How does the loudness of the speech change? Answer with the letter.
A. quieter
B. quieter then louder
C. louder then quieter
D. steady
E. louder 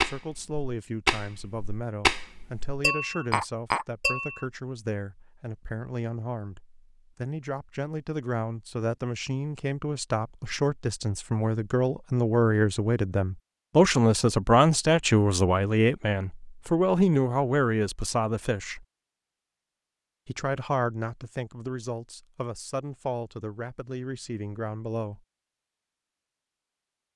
C.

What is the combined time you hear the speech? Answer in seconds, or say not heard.
24 s.